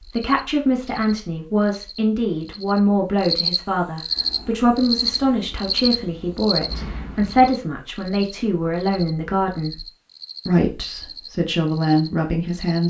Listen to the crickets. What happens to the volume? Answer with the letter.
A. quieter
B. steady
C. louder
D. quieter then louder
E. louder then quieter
E.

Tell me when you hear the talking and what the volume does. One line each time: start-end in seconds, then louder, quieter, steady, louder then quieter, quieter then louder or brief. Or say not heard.
0.0-9.8 steady
10.4-12.8 brief.